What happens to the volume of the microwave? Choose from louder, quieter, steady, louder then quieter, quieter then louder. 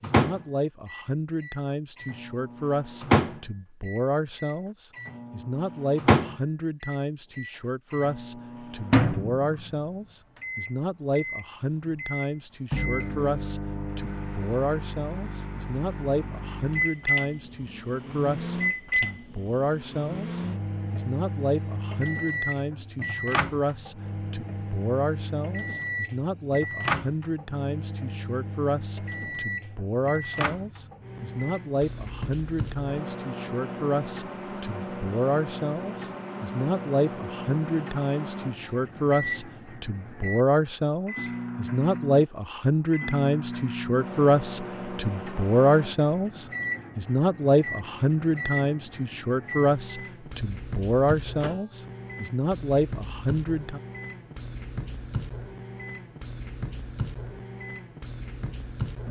quieter.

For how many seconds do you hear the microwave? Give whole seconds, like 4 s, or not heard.
59 s.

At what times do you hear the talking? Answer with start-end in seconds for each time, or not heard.
0.0-53.8.